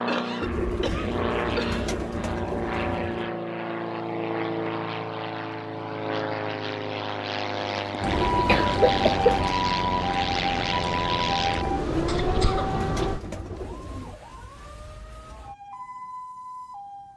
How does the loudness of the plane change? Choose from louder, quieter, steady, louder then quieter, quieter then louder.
steady.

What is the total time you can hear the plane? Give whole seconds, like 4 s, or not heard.
13 s.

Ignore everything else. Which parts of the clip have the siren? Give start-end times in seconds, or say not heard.
8.0-17.1.